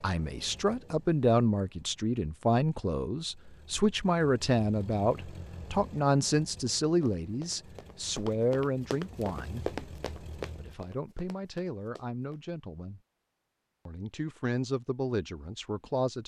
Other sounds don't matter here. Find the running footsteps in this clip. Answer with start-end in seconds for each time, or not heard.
6.8-12.4.